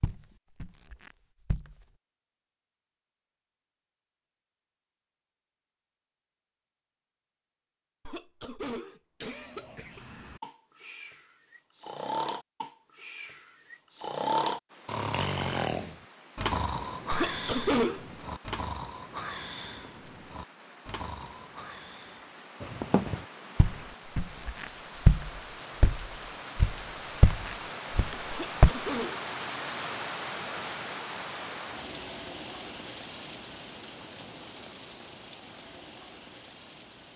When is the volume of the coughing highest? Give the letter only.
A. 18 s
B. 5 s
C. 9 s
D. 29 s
A.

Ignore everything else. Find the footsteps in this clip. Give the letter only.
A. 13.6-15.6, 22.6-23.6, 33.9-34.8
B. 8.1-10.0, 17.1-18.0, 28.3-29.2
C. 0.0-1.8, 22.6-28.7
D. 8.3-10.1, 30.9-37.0
C.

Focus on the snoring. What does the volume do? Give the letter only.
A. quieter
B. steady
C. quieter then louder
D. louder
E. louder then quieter
E.